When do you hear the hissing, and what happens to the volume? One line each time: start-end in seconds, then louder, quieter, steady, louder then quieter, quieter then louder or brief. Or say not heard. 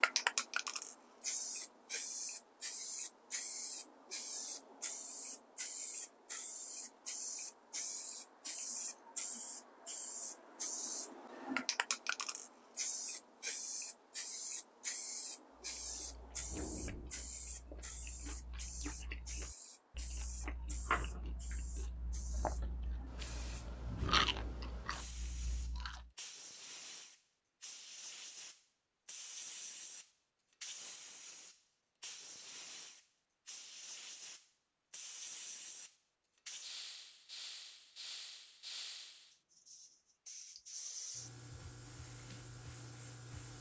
0.0-43.5 quieter.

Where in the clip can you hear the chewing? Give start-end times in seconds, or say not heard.
15.6-26.1.